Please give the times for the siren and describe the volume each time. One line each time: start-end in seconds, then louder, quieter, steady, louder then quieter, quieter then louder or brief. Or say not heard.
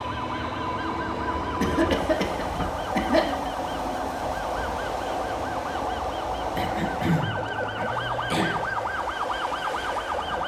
0.0-10.4 louder.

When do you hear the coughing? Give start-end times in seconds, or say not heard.
1.6-3.3, 6.5-8.6.